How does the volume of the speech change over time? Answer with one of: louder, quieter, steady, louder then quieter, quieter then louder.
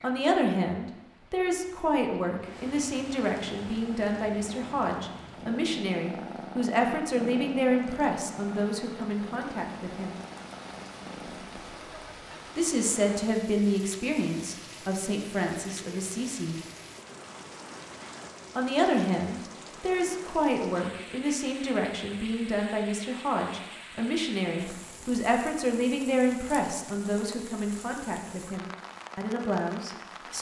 steady.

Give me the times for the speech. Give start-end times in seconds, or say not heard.
0.0-10.2, 12.6-16.6, 18.6-30.3.